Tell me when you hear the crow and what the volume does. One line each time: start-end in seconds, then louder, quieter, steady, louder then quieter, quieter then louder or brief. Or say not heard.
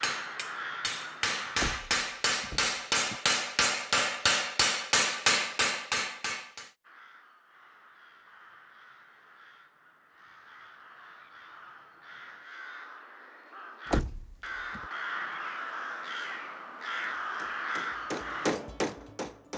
0.0-1.8 brief
6.8-18.5 louder.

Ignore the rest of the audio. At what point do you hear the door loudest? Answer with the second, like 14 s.
14 s.